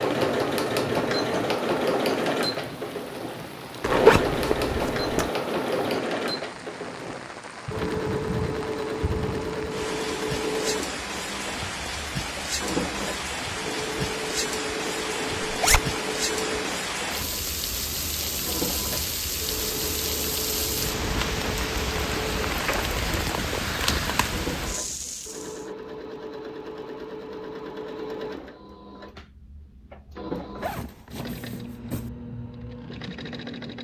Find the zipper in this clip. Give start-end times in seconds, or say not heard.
3.8-5.3, 15.4-15.8, 30.6-32.1.